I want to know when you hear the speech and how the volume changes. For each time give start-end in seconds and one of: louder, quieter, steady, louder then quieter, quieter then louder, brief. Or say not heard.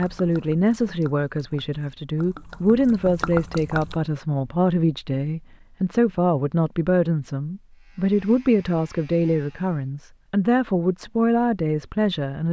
0.0-12.4 steady.